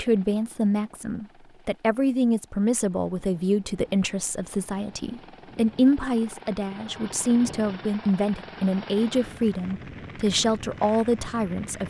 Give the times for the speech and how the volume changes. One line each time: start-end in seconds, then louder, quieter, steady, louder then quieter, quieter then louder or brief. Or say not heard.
0.0-11.8 steady.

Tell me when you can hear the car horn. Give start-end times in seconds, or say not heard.
not heard.